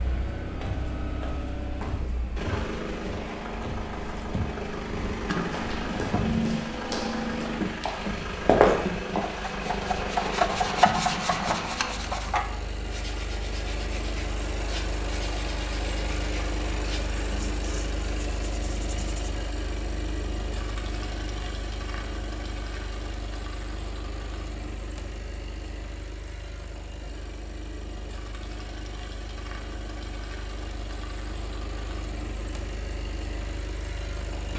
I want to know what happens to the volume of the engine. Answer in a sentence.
The volume of the engine goes down.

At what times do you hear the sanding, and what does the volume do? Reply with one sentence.
You can hear the sanding from 9.2 to 19.4 s, getting quieter.